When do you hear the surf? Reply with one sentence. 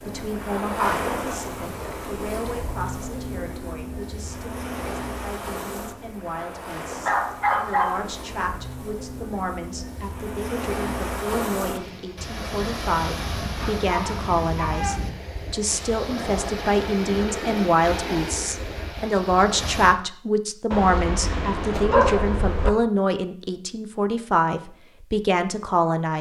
You can hear the surf from 0.0 to 19.9 s.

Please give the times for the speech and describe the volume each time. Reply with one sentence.
You can hear the speech from 0.0 to 26.1 s, getting louder.